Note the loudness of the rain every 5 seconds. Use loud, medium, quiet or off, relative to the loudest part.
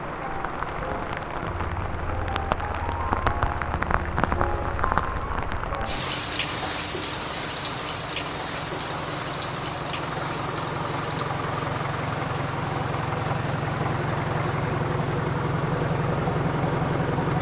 loud, loud, medium, quiet.